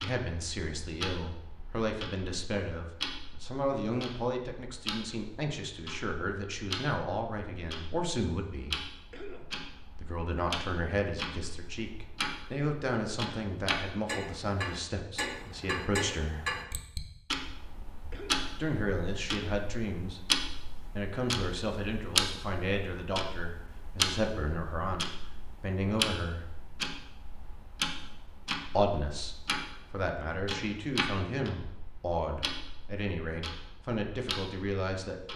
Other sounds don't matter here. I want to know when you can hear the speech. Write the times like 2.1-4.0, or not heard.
0.0-8.8, 10.0-16.4, 18.6-20.3, 20.9-26.4, 28.8-35.3.